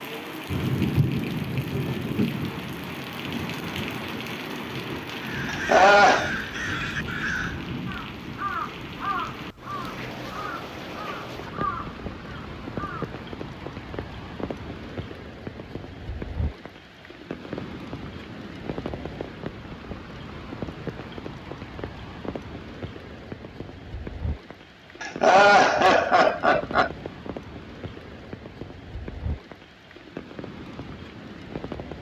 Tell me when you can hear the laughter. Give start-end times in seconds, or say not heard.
5.5-6.3, 25.0-26.9.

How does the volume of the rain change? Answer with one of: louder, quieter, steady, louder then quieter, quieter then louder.
quieter.